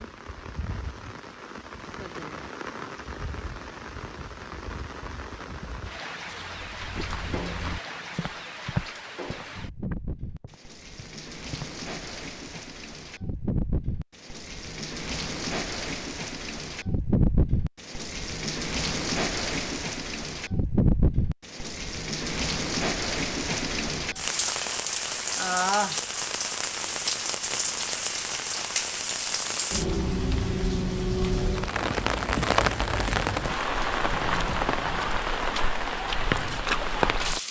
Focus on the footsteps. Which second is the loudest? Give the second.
9 s.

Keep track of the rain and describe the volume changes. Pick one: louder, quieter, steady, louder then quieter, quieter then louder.
louder.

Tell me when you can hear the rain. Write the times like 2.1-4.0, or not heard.
0.0-37.4.